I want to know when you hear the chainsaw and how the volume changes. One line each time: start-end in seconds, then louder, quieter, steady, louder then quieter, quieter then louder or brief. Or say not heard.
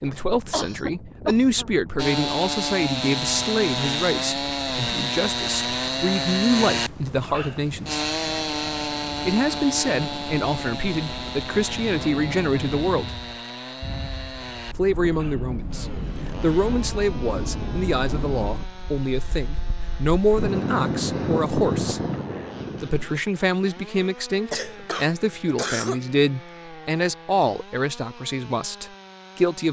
1.9-29.6 quieter.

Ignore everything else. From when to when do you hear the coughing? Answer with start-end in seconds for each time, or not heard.
0.5-1.7, 24.5-26.0.